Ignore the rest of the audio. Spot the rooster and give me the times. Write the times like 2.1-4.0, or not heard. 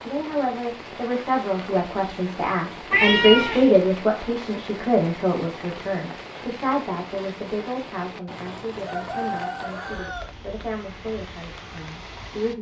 8.8-10.3.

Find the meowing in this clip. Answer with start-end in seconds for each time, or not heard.
2.9-3.8.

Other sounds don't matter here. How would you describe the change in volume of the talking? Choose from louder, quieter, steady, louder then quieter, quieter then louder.
louder then quieter.